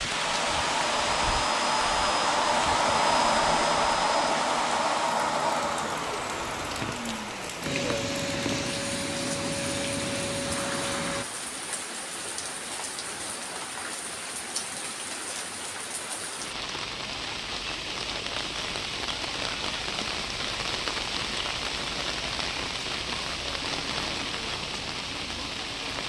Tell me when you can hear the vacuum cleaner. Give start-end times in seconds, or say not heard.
0.0-11.2.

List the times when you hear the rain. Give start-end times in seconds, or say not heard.
0.0-26.0.